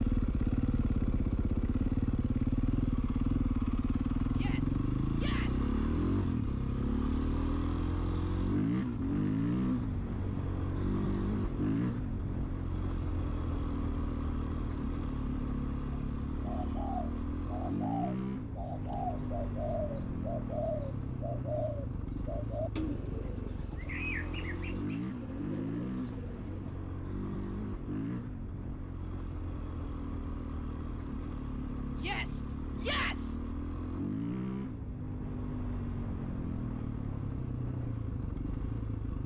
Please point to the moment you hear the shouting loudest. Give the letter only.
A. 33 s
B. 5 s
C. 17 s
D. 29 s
A.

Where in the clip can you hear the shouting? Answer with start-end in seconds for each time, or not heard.
4.3-5.7, 31.9-33.4.